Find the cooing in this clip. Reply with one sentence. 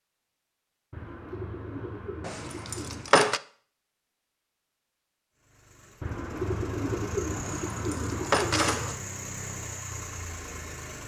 You can hear the cooing from 0.9 to 3.1 s and from 6.0 to 8.9 s.